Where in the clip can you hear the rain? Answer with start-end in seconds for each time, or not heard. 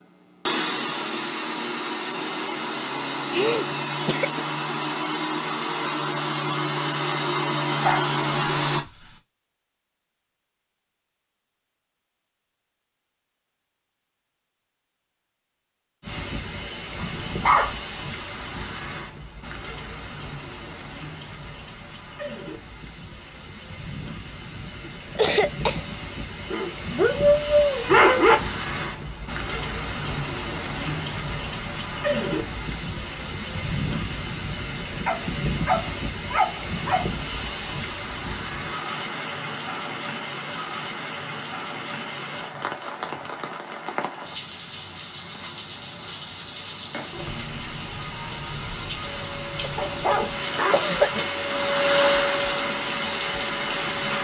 16.0-54.1.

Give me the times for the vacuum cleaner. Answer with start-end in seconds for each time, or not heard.
0.0-8.8, 49.0-54.1.